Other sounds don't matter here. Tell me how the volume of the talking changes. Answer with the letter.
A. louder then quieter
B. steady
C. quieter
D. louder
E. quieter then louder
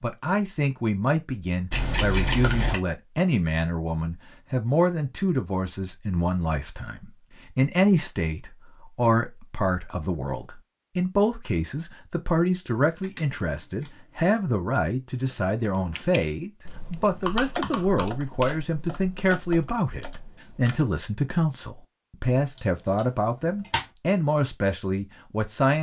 B.